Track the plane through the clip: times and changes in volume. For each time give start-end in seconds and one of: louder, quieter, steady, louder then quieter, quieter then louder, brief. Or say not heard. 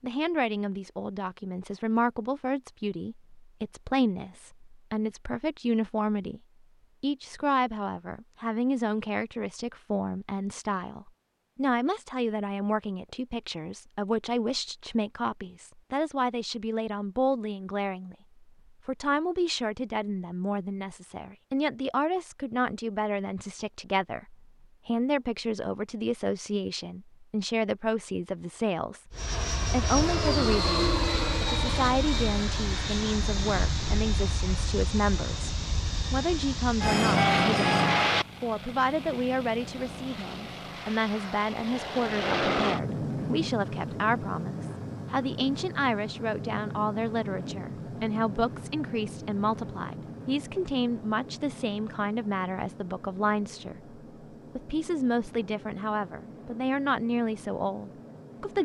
29.1-58.6 quieter.